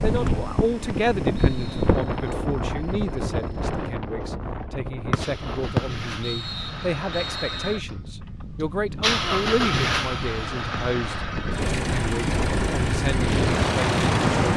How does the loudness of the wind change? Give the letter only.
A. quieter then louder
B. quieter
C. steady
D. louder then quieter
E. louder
A.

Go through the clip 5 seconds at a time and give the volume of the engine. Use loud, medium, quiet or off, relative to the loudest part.
quiet, loud, loud.